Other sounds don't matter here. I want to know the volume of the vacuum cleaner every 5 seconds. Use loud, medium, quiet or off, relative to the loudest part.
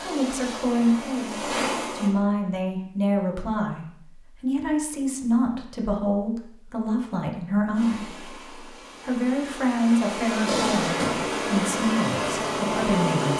medium, quiet, loud.